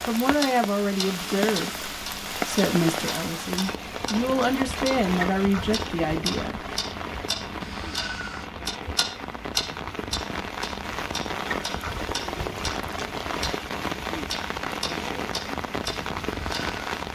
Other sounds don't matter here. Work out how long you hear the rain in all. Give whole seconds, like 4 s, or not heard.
17 s.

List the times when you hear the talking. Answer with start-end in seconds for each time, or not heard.
0.1-6.6.